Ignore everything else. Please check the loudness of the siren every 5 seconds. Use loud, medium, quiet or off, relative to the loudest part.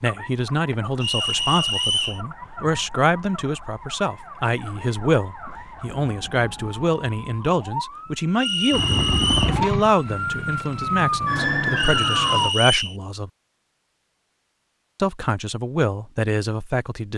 quiet, medium, loud, off.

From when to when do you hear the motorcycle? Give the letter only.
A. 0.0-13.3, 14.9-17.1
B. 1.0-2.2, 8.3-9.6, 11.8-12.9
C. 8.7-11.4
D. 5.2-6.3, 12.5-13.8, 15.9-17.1
C.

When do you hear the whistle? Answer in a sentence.
The whistle can be heard from 1.0 to 2.2 s, from 8.3 to 9.6 s and from 11.8 to 12.9 s.